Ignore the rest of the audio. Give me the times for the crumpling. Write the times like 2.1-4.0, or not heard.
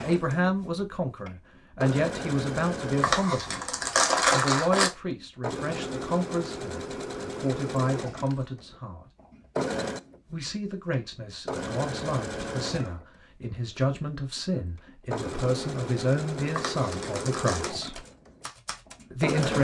3.0-4.9, 16.5-17.6.